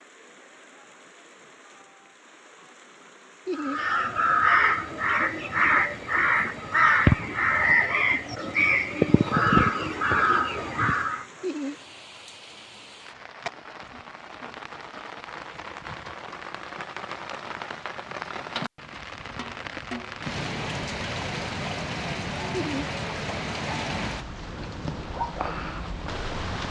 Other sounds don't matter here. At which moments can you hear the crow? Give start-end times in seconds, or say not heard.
3.5-11.2.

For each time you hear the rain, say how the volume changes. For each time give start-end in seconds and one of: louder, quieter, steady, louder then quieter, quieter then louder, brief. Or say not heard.
0.0-26.6 louder.